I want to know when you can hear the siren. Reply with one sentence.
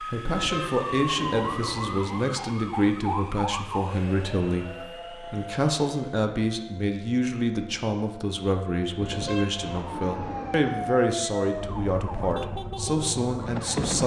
You can hear the siren from 0.0 to 14.0 s.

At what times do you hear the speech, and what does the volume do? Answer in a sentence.
The speech can be heard from 0.0 to 14.0 s, at a steady volume.